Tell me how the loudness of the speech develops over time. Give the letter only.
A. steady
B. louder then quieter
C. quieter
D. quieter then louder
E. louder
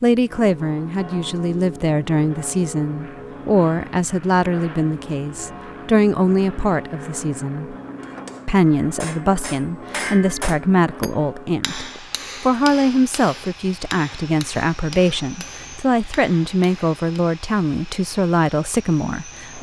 A.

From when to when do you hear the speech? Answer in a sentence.
The speech can be heard from 0.0 to 7.8 s and from 8.4 to 19.5 s.